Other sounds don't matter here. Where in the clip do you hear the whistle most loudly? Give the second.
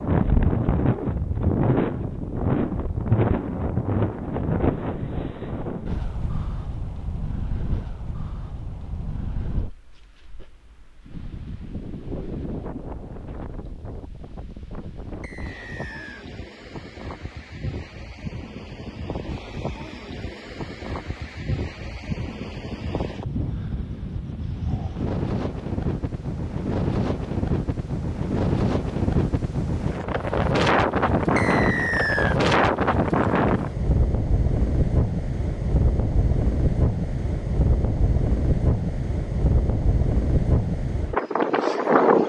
32 s.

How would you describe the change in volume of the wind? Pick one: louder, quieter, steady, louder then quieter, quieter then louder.
quieter then louder.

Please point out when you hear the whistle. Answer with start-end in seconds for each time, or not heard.
15.2-16.2, 31.4-32.4.